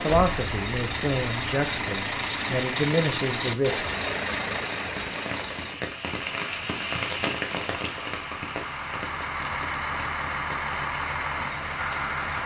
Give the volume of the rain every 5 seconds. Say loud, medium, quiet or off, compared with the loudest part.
medium, loud, medium.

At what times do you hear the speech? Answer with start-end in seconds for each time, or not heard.
0.0-3.9.